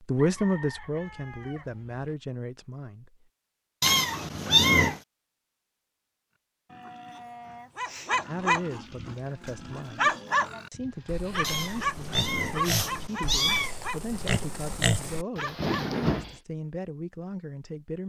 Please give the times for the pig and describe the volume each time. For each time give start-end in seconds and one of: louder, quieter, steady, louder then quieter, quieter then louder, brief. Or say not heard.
6.7-16.4 louder.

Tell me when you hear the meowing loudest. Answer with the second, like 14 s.
5 s.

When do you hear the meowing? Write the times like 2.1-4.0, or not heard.
3.8-5.0, 11.4-13.8.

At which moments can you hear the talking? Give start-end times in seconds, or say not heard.
0.1-3.2, 8.2-18.0.